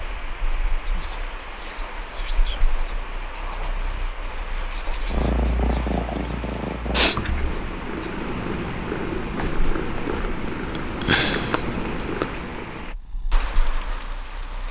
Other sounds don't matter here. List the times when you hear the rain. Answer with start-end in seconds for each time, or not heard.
0.0-14.6.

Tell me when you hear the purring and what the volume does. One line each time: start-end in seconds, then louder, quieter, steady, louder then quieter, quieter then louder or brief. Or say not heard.
0.0-14.6 louder then quieter.